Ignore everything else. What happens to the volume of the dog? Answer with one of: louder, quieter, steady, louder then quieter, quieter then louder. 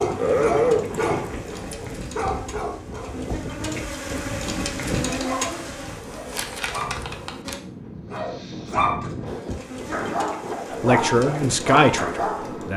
quieter then louder.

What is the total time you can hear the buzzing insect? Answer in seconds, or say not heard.
11 s.